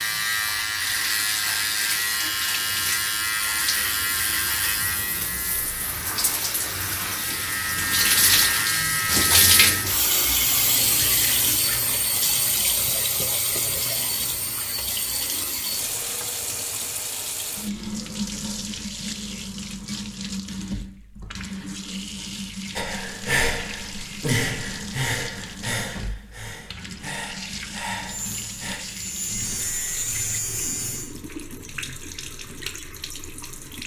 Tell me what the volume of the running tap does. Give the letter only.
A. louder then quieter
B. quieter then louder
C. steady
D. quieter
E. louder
A.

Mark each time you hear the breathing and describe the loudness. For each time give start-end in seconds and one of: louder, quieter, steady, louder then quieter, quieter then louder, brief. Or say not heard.
22.8-28.8 quieter.